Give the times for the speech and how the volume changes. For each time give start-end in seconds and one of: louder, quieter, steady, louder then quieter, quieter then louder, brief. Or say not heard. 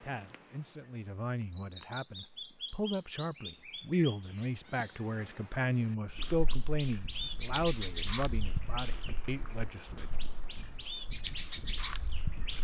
0.0-10.2 louder then quieter.